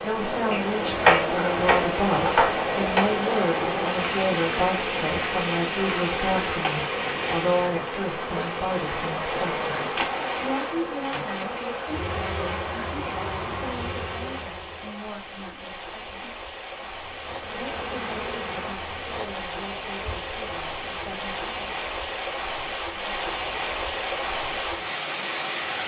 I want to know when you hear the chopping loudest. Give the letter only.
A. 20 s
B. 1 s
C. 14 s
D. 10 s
B.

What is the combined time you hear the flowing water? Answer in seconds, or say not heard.
26 s.